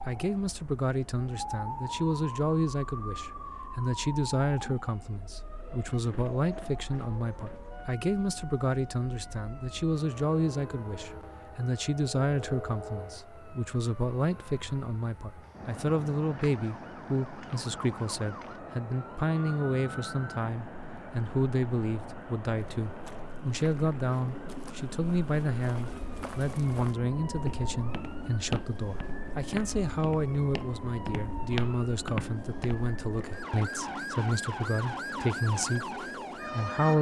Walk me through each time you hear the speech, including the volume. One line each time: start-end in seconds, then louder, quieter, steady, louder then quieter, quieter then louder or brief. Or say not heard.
0.1-36.9 steady.